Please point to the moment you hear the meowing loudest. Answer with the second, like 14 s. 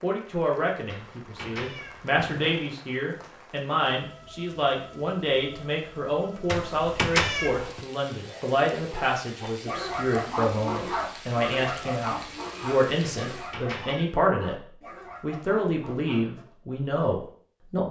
7 s.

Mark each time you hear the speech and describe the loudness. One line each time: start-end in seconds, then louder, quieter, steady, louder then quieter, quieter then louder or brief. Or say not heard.
0.0-14.6 steady
15.2-17.8 brief.